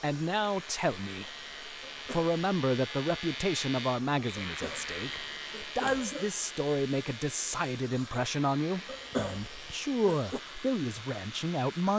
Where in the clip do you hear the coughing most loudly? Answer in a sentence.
The loudest moment of the coughing is at 9 seconds.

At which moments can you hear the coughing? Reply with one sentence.
You can hear the coughing from 1.9 to 2.4 s, from 4.4 to 6.3 s and from 8.8 to 10.4 s.